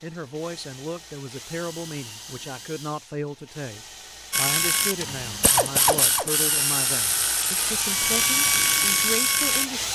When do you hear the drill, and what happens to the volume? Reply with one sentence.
The drill can be heard from 0.0 to 9.9 s, getting louder.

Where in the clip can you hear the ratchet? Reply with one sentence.
You can hear the ratchet from 4.3 to 9.7 s.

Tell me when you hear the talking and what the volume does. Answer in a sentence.
You can hear the talking from 0.0 to 9.9 s, at a steady volume.